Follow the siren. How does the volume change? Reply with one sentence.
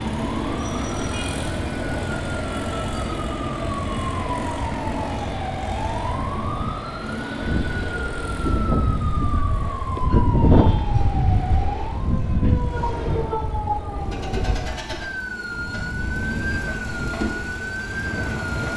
The volume of the siren stays about the same.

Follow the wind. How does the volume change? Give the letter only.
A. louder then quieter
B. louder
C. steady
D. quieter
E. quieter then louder
A.